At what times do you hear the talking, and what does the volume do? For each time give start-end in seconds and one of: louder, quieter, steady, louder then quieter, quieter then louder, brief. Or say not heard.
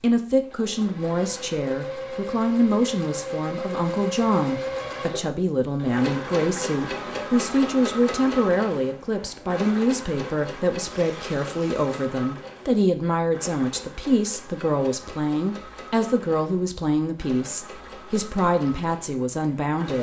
0.0-19.9 steady.